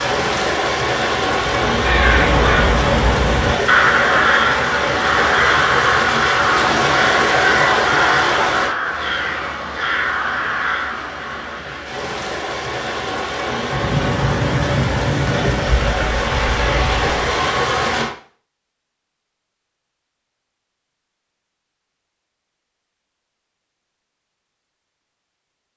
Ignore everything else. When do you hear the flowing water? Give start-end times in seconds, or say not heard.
0.0-18.1.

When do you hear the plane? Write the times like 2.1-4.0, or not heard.
13.6-17.2.